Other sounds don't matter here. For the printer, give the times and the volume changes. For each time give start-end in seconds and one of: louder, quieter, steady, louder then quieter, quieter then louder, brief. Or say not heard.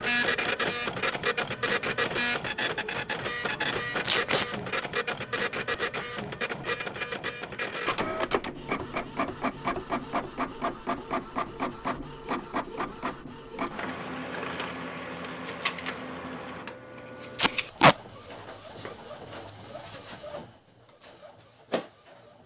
0.0-22.4 quieter.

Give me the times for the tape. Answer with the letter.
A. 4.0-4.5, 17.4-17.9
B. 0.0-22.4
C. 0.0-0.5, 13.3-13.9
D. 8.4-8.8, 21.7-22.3
A.